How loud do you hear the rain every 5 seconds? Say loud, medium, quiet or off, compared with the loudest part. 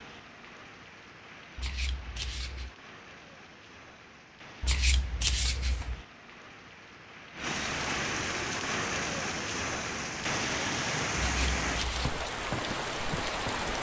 quiet, loud, loud.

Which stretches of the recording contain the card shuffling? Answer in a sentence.
The card shuffling can be heard from 1.6 to 2.7 s, from 4.6 to 6.0 s and from 11.2 to 12.2 s.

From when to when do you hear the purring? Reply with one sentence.
The purring can't be heard in this clip.